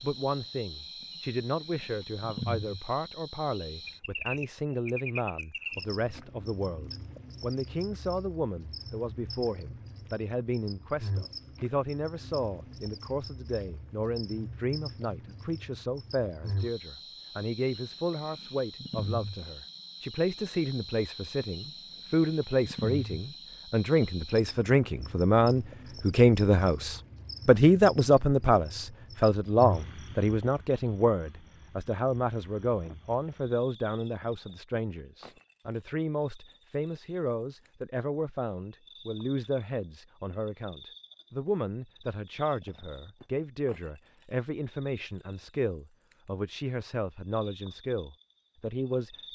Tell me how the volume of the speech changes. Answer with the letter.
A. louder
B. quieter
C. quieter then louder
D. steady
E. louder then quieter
E.